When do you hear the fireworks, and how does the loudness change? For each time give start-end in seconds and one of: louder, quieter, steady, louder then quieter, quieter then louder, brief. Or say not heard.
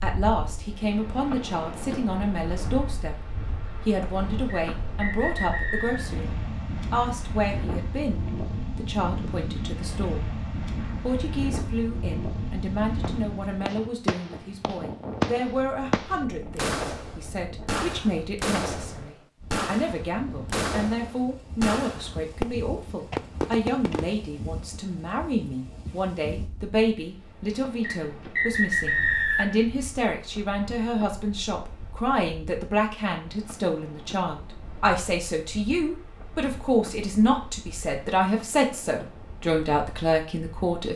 13.0-24.1 steady.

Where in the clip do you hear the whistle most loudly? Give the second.
29 s.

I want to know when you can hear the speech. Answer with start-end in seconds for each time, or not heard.
0.0-10.3, 11.0-40.9.